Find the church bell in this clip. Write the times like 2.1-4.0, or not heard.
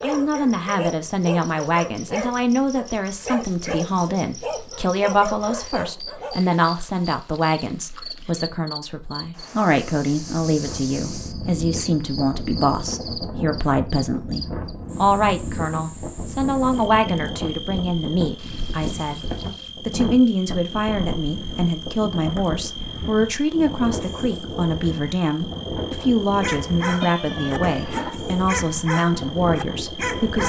not heard.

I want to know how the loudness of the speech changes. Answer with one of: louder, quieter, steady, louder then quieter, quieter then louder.
steady.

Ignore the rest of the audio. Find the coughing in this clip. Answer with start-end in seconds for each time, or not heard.
not heard.